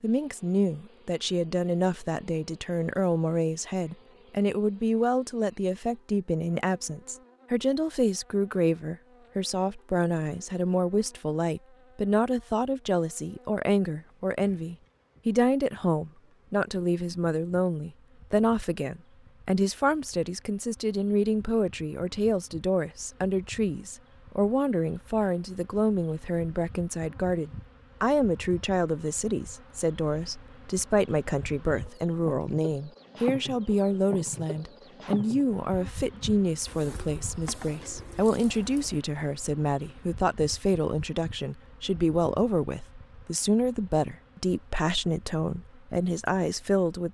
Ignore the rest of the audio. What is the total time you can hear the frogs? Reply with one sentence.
The frogs can't be heard in this clip.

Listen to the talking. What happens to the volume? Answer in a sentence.
The volume of the talking stays about the same.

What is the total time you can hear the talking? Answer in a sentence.
The talking can be heard for 47 seconds in total.